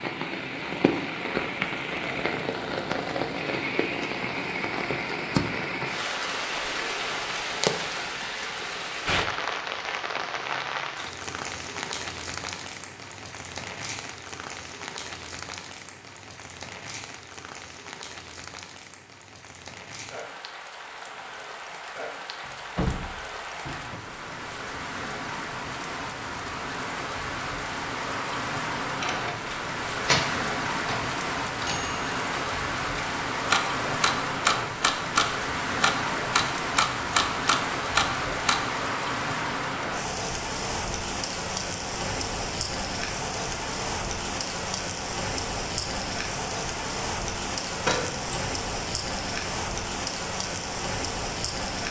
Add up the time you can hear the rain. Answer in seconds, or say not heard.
52 s.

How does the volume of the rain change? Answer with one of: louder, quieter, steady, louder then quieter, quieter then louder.
quieter then louder.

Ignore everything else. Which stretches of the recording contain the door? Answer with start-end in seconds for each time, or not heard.
22.4-24.0, 47.8-48.4.